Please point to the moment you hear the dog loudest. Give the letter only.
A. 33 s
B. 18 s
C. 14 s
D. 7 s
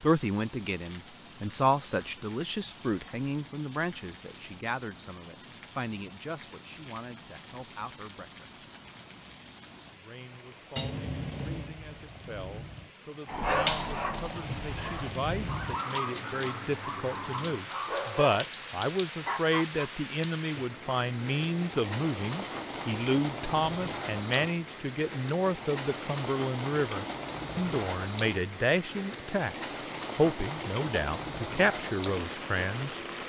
C.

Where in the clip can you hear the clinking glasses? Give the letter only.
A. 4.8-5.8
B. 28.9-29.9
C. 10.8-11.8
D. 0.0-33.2
C.